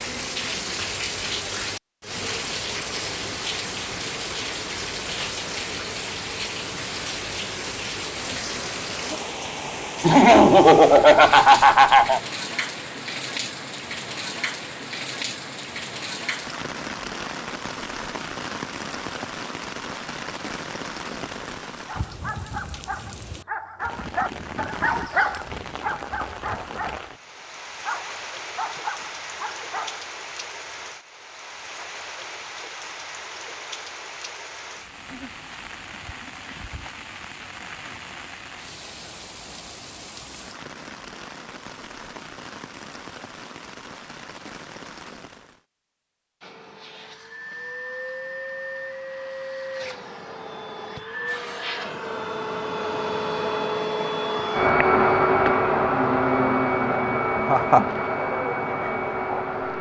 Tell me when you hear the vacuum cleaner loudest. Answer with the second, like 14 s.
55 s.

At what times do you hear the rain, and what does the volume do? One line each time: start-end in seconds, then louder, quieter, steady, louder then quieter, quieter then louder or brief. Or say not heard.
0.0-45.6 quieter.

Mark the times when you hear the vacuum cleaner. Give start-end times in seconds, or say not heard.
46.4-59.7.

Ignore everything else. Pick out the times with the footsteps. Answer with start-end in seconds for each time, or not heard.
not heard.